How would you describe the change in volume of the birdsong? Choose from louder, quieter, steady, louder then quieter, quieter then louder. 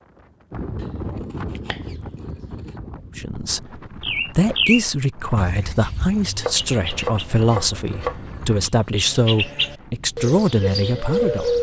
quieter then louder.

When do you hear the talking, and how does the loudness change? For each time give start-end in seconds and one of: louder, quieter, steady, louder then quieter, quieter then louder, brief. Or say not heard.
3.1-11.5 steady.